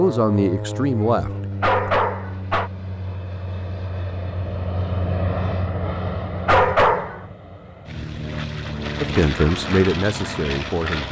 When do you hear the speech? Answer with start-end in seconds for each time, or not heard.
0.0-1.9, 9.0-11.0.